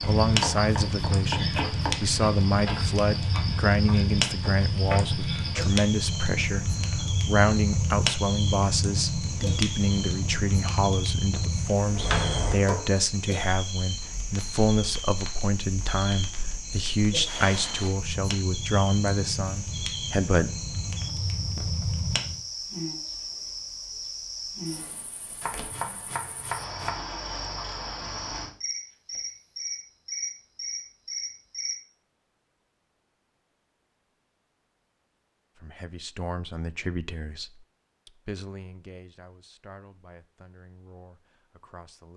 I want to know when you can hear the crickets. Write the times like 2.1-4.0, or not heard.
0.0-31.8.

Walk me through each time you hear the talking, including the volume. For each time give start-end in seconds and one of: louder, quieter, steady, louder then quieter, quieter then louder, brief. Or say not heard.
0.0-20.5 steady
35.5-42.1 quieter.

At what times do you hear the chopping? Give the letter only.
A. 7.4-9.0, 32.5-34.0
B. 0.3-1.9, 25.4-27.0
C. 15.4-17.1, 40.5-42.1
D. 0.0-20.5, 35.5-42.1
B.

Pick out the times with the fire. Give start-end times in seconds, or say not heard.
0.0-22.4.